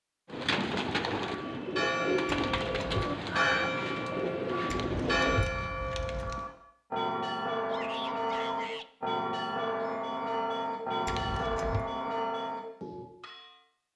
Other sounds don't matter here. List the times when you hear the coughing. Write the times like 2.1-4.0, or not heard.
not heard.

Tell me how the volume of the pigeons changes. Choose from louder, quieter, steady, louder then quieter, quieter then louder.
steady.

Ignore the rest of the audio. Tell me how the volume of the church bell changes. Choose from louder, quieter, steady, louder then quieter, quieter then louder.
steady.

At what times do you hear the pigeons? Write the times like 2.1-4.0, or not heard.
0.2-5.5.